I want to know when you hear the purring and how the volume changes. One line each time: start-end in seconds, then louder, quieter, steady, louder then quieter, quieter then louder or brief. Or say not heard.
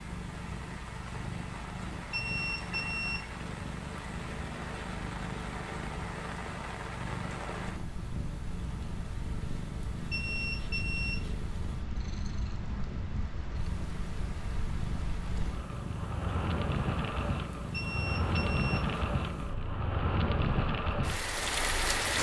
0.0-22.1 steady.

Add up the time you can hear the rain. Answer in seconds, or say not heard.
22 s.